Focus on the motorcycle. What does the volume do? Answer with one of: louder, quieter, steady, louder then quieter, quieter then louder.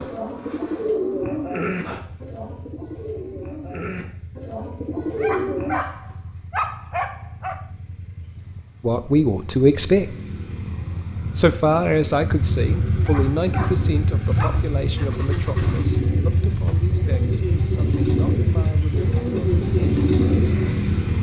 louder.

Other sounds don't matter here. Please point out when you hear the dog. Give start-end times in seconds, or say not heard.
5.2-7.5, 13.0-14.6.